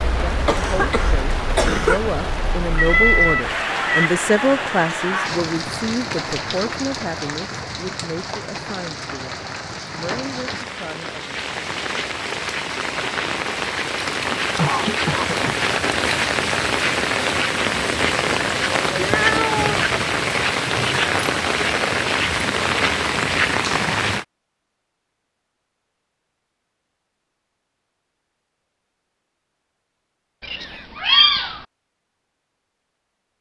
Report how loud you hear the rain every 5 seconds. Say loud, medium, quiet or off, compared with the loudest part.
medium, medium, medium, loud, loud, off, off.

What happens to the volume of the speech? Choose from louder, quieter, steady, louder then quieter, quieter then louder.
louder then quieter.